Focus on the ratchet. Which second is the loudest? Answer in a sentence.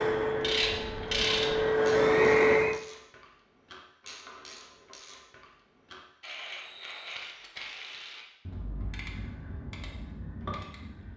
The volume of the ratchet peaks at 1 second.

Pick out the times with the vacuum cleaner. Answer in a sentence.
You can hear the vacuum cleaner from 0.0 to 2.8 s.